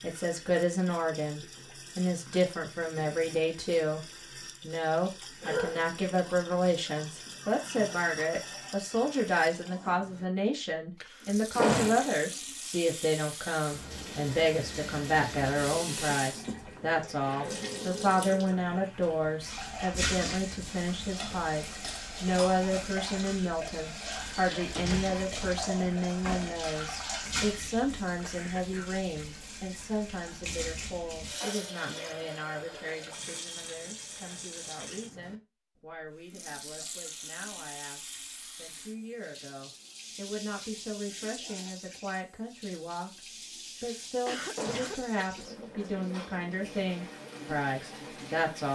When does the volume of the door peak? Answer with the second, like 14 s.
12 s.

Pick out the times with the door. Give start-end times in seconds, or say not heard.
11.6-12.1, 24.0-25.2, 44.5-45.1.